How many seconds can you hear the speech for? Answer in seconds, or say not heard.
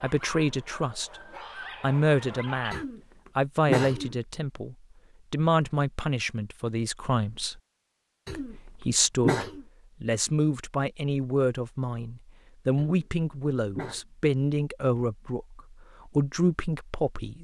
16 s.